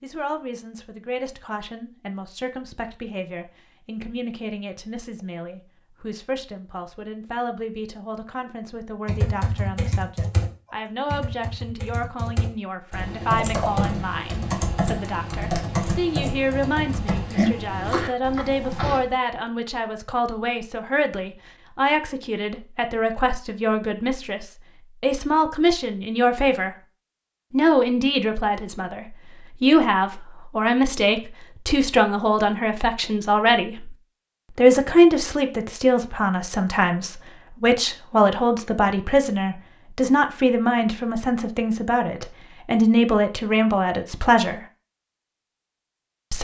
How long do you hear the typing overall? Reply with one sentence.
The typing can be heard for 10 seconds in total.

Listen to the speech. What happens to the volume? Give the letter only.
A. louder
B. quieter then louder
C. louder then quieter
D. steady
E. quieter
A.